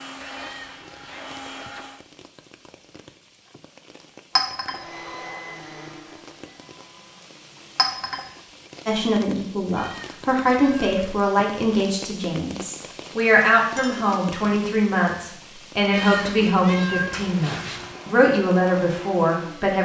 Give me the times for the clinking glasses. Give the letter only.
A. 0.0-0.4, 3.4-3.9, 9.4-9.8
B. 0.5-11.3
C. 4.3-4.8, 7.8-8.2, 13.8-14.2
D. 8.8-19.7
C.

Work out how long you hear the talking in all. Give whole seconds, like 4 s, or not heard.
11 s.